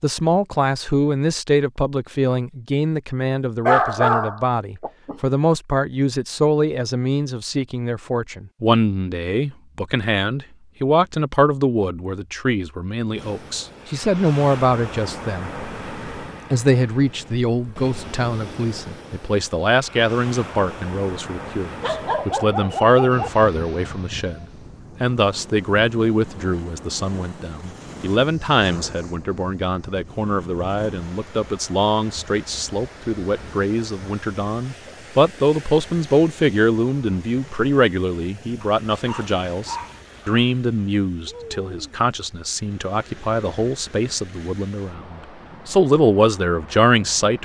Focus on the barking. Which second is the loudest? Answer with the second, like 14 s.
4 s.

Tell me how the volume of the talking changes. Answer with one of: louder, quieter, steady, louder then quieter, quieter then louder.
steady.